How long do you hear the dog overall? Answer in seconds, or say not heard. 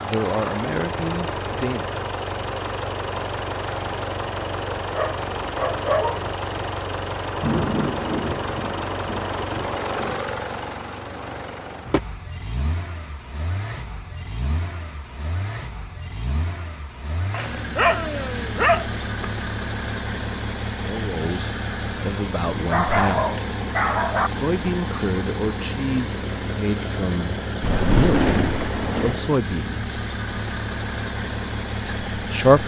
5 s.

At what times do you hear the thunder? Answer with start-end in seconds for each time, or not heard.
7.4-10.2, 27.6-29.1.